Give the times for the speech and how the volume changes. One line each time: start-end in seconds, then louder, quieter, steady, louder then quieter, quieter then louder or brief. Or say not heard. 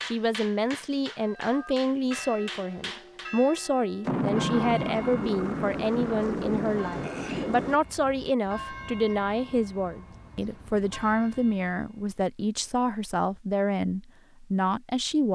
0.0-15.2 steady.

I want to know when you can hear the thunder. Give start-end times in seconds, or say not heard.
4.0-7.8.